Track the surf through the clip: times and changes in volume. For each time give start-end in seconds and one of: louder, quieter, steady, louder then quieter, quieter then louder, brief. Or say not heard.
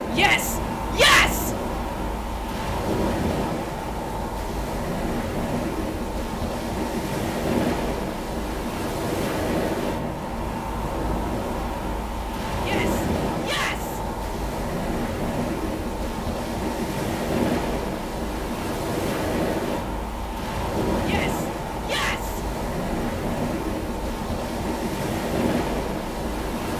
0.0-26.7 steady.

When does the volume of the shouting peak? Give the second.
1 s.